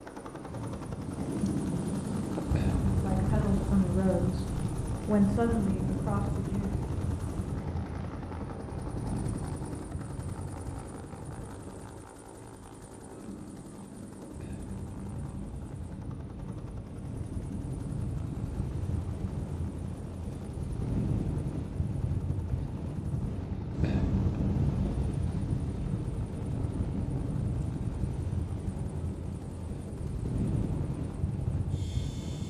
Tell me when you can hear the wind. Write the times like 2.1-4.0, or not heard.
0.0-32.4.